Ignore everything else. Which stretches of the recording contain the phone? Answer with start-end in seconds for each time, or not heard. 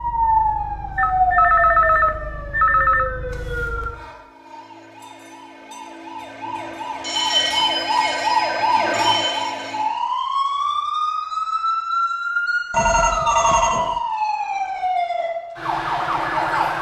0.9-3.1, 7.5-8.9, 12.7-14.0.